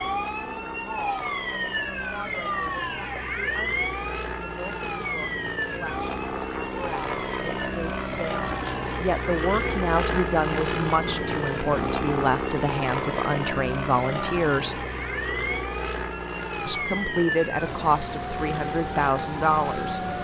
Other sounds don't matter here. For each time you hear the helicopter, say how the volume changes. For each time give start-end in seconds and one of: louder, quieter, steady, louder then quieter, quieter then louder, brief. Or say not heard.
0.0-20.1 louder then quieter.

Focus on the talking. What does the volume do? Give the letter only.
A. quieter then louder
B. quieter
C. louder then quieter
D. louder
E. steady
D.